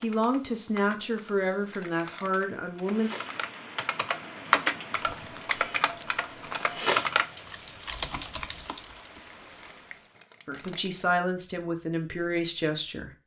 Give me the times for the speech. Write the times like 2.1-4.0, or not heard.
0.0-3.1, 10.4-13.1.